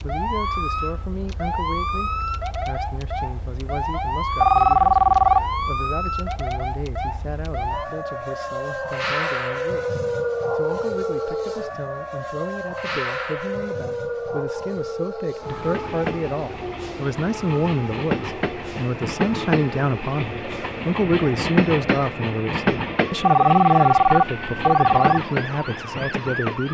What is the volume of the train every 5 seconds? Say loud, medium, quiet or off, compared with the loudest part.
off, off, off, loud, loud, loud.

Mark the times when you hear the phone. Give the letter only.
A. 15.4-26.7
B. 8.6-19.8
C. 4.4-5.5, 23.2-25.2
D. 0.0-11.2
C.